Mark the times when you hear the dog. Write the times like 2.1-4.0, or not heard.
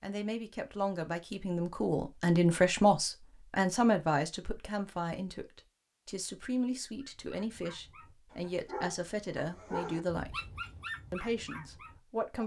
7.0-12.4.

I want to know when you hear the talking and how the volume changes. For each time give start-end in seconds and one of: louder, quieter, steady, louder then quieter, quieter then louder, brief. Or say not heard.
0.0-10.4 louder then quieter
11.1-12.4 brief.